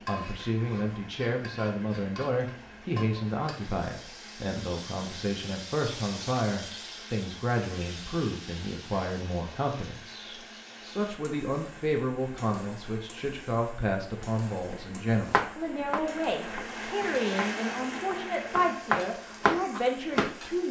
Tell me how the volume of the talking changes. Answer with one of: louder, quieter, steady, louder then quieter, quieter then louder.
steady.